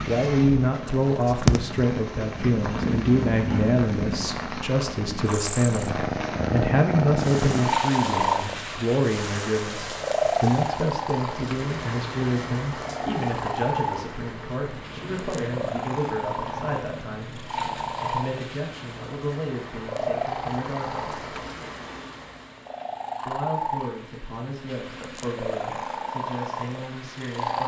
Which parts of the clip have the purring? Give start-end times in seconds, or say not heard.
0.0-27.6.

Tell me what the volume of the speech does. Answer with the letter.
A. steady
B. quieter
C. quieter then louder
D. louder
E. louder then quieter
B.